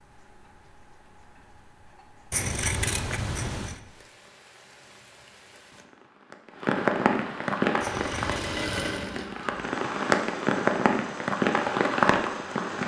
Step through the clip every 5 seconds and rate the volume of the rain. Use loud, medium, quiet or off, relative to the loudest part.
quiet, medium, loud.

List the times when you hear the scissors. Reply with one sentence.
The scissors can be heard from 2.3 to 3.8 s and from 7.8 to 8.8 s.